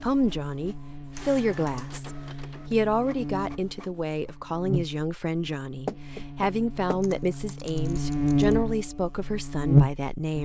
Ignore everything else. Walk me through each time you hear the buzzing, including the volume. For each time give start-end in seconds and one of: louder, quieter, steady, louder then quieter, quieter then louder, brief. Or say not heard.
0.0-10.4 louder.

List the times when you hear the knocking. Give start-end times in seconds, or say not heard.
5.8-7.0.